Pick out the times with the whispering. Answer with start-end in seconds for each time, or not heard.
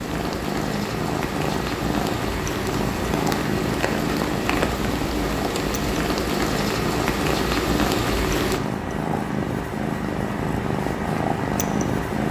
not heard.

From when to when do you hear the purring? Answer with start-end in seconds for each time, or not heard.
0.0-12.2.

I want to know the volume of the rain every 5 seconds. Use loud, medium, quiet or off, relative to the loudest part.
loud, loud, off.